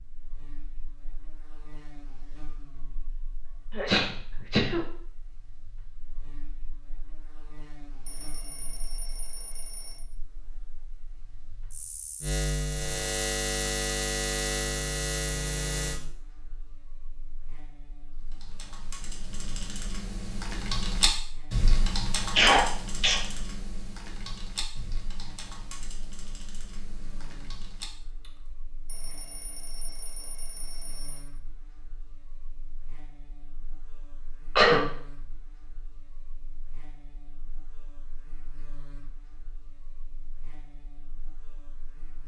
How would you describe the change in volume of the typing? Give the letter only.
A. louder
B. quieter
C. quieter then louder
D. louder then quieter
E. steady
D.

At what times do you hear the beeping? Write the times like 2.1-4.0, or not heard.
8.1-10.1, 28.9-31.3.